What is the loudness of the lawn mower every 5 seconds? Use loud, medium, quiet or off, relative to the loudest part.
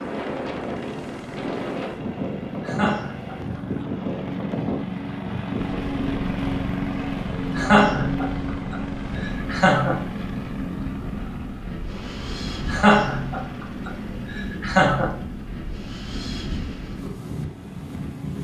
medium, loud, medium, quiet.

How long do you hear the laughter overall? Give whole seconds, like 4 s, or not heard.
6 s.